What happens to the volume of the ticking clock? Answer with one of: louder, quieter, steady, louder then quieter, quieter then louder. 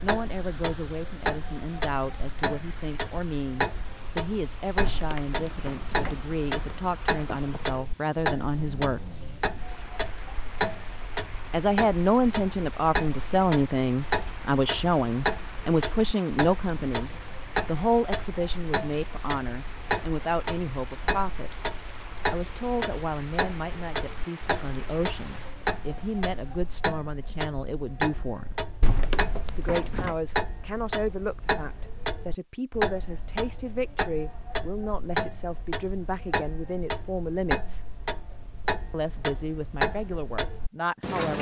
steady.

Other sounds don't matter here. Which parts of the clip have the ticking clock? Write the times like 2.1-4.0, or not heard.
0.0-41.3.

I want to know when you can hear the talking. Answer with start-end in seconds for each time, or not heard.
0.0-9.0, 11.5-21.5, 22.3-28.6, 29.6-37.8, 38.9-41.3.